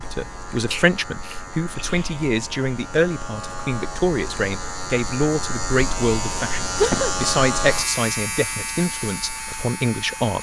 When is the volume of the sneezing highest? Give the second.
7 s.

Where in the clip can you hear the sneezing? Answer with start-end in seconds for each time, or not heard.
0.7-2.1, 6.8-7.2.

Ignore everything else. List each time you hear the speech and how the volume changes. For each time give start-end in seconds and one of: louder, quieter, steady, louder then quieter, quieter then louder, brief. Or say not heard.
0.0-10.3 steady.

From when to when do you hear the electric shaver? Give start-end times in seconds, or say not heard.
0.0-10.3.